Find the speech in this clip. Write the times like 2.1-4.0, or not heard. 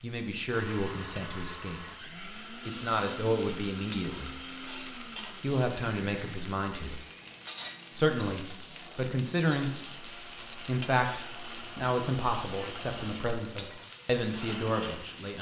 0.0-1.8, 2.6-4.3, 5.4-7.0, 7.9-9.7, 10.7-15.3.